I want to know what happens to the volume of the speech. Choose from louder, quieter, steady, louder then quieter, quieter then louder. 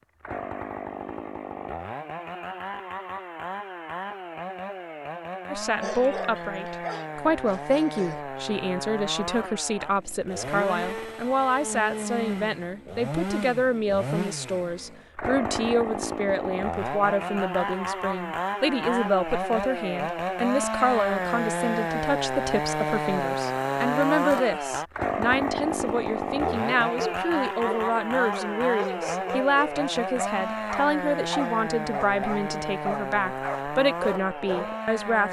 steady.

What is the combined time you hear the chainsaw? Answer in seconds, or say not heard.
35 s.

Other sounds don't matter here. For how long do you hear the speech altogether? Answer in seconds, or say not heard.
30 s.